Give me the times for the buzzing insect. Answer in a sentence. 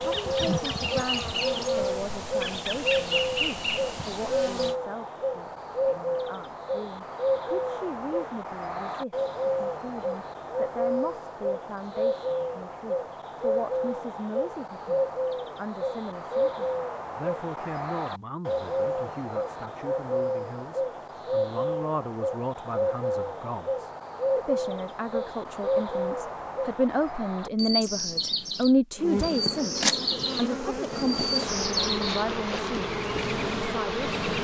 The buzzing insect can be heard from 0.0 to 4.8 s and from 28.9 to 34.3 s.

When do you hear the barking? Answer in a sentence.
You can't hear the barking here.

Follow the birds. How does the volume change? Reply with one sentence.
The volume of the birds stays about the same.